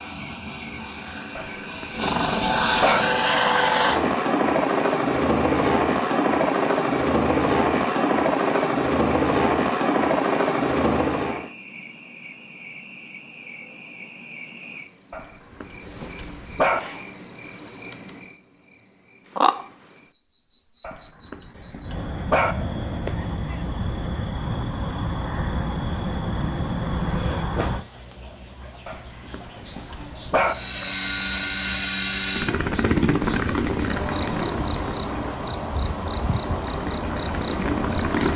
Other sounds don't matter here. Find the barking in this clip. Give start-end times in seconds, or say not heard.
1.4-3.0, 15.1-16.8, 20.8-22.6, 28.9-30.6.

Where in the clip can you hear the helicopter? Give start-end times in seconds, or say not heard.
0.0-11.5, 30.4-38.3.